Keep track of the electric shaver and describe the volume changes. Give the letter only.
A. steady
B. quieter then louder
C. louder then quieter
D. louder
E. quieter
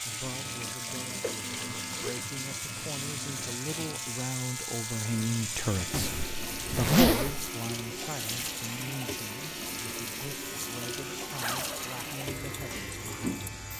A.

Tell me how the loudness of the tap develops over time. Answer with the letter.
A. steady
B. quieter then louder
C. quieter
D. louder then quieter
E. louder
A.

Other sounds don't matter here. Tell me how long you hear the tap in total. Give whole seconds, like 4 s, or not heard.
14 s.